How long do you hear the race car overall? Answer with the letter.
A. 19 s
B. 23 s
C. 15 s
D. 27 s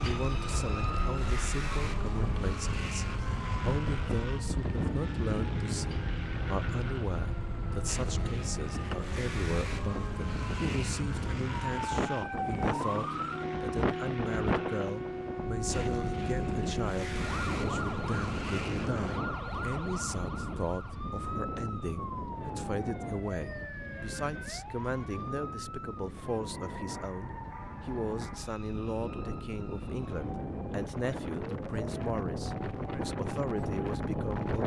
A.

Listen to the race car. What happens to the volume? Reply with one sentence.
The loudness of the race car stays about the same.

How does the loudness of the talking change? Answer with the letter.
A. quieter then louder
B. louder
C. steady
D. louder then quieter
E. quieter
C.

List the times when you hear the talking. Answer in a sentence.
You can hear the talking from 0.0 to 34.6 s.